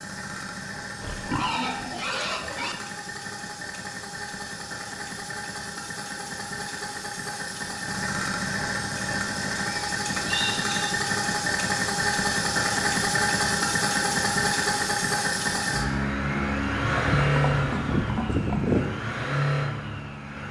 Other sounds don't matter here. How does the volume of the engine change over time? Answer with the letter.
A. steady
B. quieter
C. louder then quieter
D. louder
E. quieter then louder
D.